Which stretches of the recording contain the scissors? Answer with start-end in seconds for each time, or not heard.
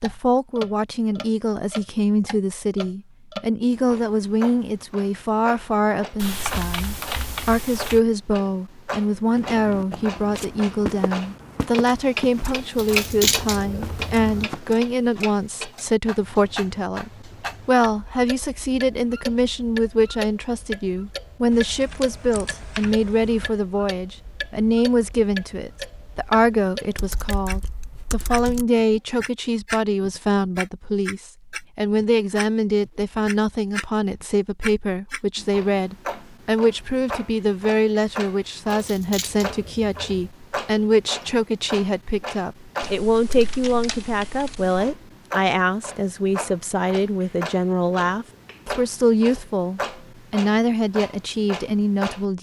12.8-14.4, 38.8-40.1.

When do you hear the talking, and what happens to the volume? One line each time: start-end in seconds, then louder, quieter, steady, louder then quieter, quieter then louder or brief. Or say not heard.
0.0-52.3 steady.